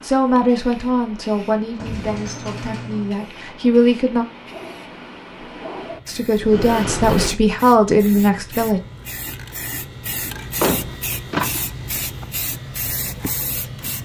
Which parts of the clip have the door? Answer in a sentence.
The door can be heard from 1.8 to 3.1 s, from 6.4 to 7.4 s and from 10.3 to 11.7 s.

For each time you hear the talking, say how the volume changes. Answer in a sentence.
You can hear the talking from 0.0 to 4.2 s, getting quieter then louder; and briefly from 6.0 to 8.8 s.